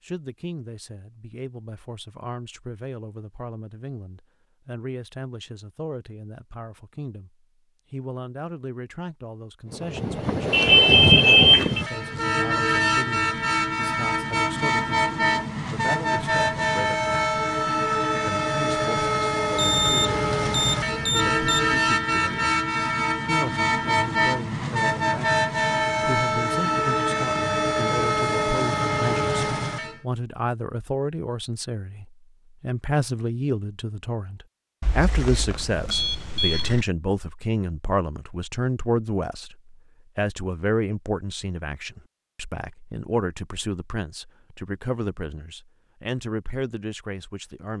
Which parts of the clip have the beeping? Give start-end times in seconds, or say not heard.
10.5-11.8, 19.6-21.7, 34.8-36.9.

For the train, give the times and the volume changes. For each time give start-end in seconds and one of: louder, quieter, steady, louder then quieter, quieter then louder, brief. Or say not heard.
9.7-30.0 steady.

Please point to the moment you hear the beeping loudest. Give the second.
11 s.